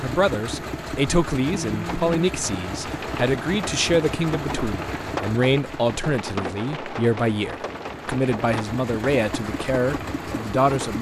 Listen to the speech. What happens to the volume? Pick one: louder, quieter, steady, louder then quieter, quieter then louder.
steady.